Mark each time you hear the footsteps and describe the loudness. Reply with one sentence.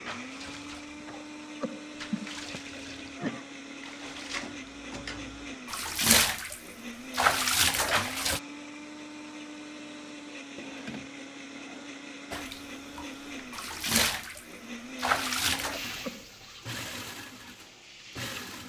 The footsteps can't be heard in this clip.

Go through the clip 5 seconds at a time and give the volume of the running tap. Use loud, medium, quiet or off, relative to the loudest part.
quiet, loud, medium, medium.